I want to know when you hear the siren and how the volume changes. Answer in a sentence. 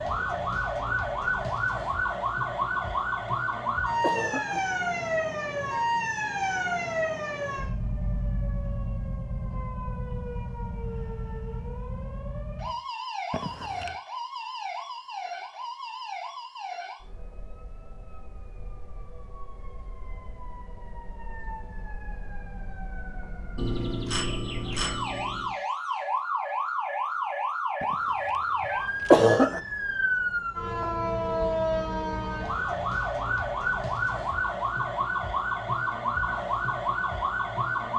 The siren can be heard from 0.0 to 37.9 s, getting quieter then louder.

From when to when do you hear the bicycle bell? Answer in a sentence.
The bicycle bell can be heard from 23.6 to 25.6 s.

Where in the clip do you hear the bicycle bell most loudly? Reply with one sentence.
The volume of the bicycle bell peaks at 24 seconds.